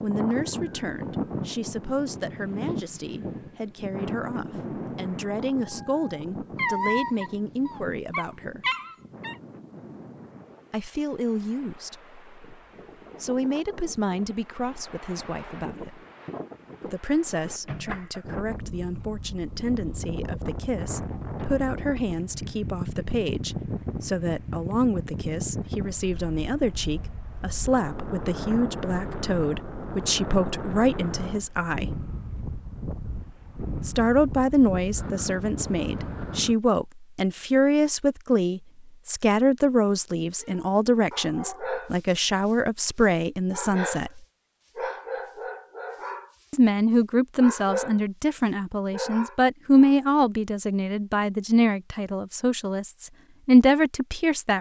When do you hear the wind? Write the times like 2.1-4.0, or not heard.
0.0-36.5.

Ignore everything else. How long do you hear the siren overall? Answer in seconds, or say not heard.
not heard.